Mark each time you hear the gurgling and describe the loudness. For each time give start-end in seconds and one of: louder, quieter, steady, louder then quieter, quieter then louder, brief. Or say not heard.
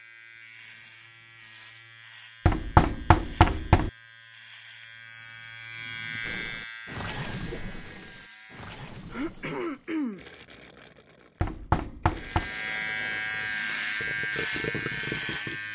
6.2-15.6 quieter then louder.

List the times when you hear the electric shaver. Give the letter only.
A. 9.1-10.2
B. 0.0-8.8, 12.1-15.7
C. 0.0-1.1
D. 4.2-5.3
B.